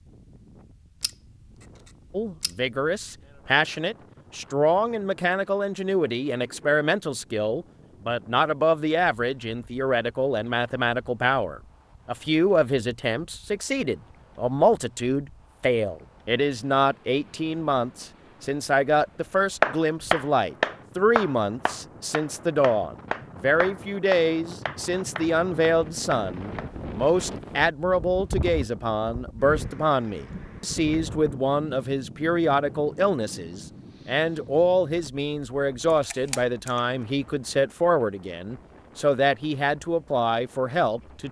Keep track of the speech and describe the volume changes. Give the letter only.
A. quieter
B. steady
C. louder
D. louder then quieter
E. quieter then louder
B.